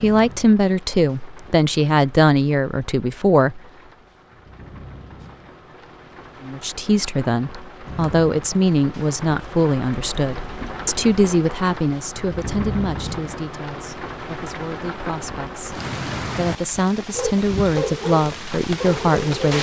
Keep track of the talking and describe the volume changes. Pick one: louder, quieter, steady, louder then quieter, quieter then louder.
quieter then louder.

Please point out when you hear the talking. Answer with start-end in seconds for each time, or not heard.
0.0-3.6, 6.4-19.5.